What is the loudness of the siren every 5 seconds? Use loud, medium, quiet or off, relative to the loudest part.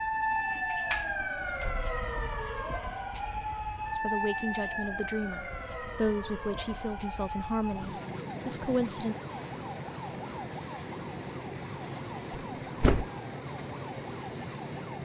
loud, medium, medium.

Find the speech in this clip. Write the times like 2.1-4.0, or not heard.
4.0-9.2.